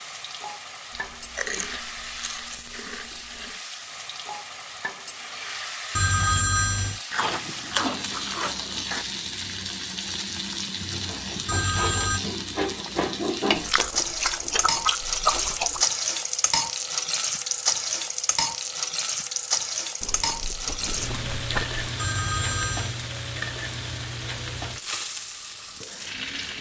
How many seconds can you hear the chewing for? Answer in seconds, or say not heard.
9 s.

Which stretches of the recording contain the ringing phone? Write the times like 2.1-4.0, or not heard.
6.0-7.0, 11.4-12.2, 21.9-23.0.